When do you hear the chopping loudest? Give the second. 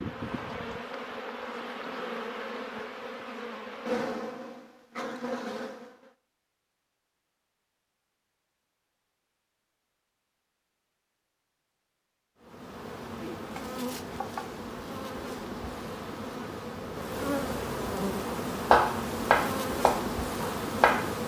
19 s.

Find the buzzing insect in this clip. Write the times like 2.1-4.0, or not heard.
0.0-6.1, 12.4-21.2.